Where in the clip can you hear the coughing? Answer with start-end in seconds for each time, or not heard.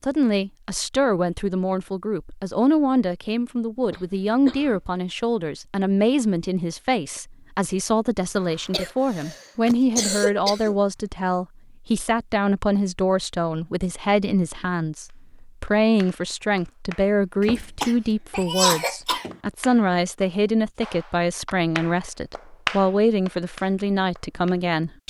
3.8-4.9, 8.4-10.8, 17.4-19.4.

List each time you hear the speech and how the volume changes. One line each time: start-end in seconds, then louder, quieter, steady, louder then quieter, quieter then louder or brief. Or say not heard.
0.0-25.0 steady.